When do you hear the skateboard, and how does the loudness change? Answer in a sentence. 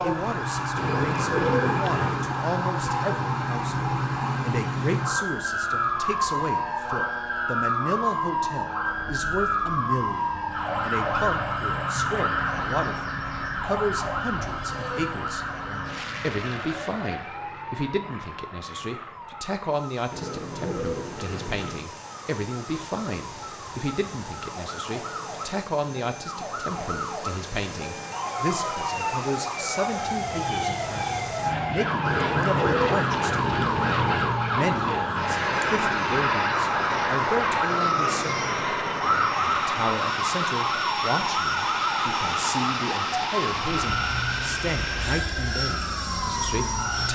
You can't hear the skateboard here.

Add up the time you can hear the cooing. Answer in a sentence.
You can hear the cooing for 6 seconds altogether.